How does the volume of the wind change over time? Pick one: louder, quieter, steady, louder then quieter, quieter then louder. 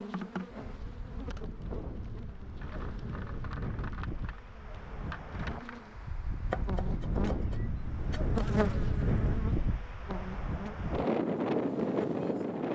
louder.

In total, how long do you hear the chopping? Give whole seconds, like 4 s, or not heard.
2 s.